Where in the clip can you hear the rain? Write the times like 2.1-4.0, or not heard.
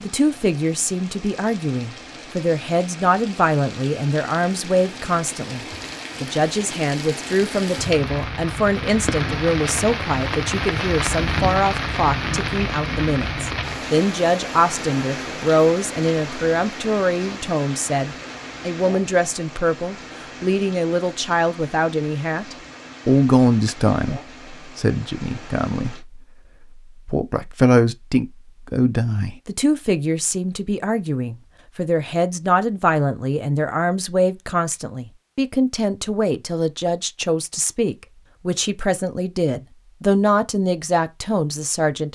0.0-26.1.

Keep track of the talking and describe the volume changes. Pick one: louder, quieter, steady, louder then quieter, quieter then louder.
steady.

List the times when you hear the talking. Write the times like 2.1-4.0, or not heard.
0.0-42.1.